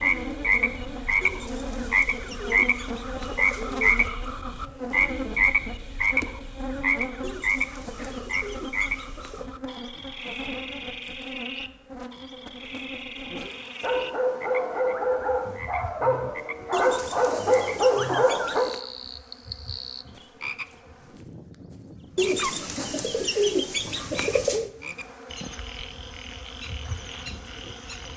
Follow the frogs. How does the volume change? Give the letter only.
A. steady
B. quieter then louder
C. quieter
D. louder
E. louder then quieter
C.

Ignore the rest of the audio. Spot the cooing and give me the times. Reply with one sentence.
You can hear the cooing from 1.2 to 4.2 s, from 7.2 to 9.4 s, from 16.7 to 18.8 s and from 22.1 to 24.7 s.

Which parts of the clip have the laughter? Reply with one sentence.
You can't hear the laughter here.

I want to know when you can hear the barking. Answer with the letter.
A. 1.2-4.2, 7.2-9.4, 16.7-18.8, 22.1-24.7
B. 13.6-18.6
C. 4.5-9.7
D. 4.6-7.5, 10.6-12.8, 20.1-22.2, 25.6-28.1
B.